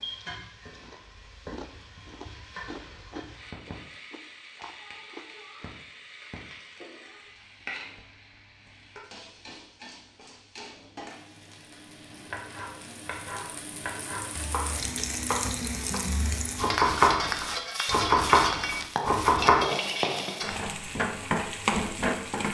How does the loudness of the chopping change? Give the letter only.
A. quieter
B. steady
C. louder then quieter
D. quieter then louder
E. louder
E.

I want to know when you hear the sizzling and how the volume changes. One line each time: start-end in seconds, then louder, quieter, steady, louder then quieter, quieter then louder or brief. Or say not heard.
0.0-22.4 louder.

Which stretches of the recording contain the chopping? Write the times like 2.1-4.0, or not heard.
12.1-19.6.